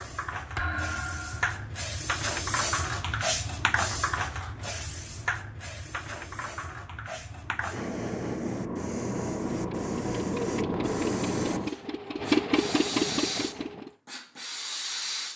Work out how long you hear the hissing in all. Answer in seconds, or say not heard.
15 s.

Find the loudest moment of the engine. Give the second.
13 s.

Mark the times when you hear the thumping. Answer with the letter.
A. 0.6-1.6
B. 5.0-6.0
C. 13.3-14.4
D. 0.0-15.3
A.